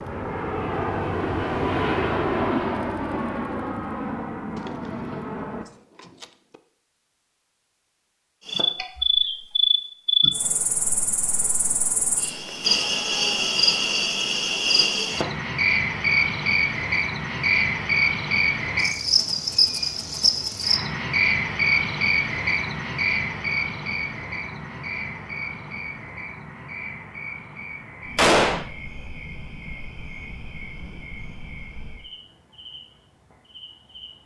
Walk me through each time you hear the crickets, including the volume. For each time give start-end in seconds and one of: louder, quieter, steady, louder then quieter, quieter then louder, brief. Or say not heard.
8.4-34.2 quieter.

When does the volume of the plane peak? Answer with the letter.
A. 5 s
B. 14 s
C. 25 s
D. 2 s
D.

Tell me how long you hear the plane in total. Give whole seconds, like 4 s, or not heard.
6 s.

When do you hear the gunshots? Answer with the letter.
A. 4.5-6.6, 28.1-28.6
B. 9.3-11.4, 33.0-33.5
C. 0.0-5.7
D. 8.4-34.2
A.